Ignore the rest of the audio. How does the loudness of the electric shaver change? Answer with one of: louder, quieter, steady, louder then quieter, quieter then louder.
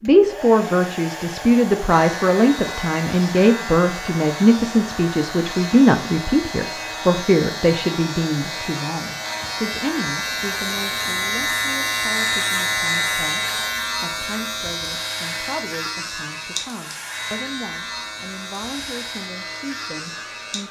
louder then quieter.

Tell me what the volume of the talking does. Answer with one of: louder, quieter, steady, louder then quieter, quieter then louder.
quieter.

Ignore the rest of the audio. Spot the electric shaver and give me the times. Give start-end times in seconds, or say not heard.
1.9-20.6.